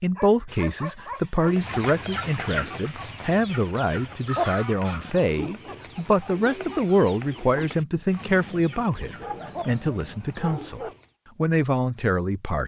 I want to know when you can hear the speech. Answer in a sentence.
The speech can be heard from 0.0 to 12.6 s.